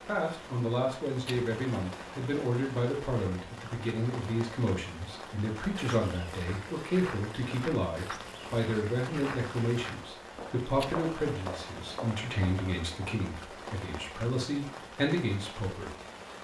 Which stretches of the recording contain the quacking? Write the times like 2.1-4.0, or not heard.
not heard.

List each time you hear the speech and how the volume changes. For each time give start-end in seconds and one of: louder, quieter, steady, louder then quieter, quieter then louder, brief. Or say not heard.
0.1-15.9 steady.